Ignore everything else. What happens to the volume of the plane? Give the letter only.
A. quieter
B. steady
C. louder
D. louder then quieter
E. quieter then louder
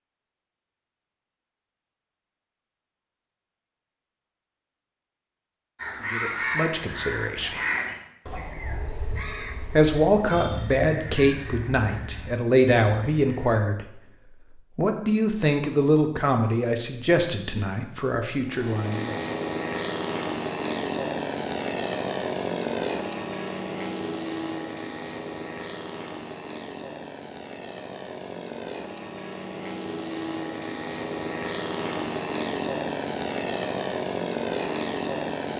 E.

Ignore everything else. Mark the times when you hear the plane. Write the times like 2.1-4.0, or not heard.
18.4-35.5.